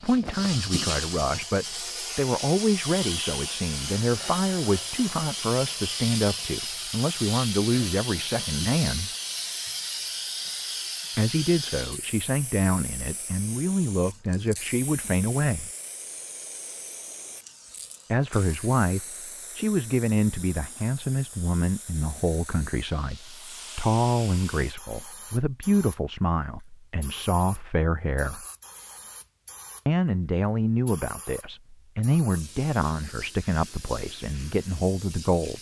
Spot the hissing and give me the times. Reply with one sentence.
You can hear the hissing from 0.0 to 35.5 s.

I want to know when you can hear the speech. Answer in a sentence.
The speech can be heard from 0.0 to 9.1 s, from 11.2 to 15.7 s, from 18.1 to 28.4 s and from 29.9 to 35.5 s.